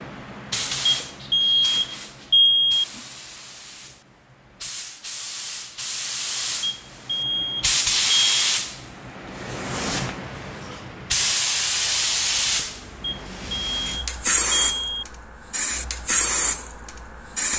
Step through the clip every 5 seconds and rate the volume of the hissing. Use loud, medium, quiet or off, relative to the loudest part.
medium, loud, loud, loud.